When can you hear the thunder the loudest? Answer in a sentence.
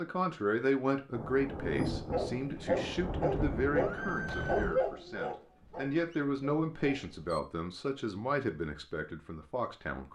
The loudest moment of the thunder is at 2 seconds.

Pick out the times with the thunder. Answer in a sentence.
You can hear the thunder from 1.1 to 4.8 s.